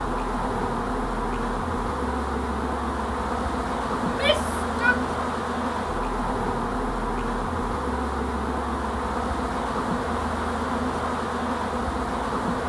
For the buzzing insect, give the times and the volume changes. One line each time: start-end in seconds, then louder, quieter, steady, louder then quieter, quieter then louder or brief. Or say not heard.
0.0-12.6 steady.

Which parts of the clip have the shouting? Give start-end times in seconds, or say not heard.
4.0-5.0.